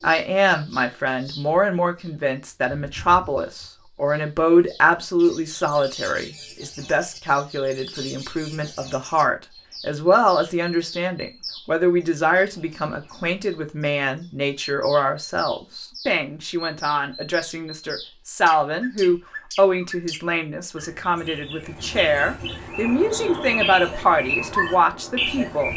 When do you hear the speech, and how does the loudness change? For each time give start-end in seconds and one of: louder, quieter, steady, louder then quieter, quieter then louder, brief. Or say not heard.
0.0-25.7 steady.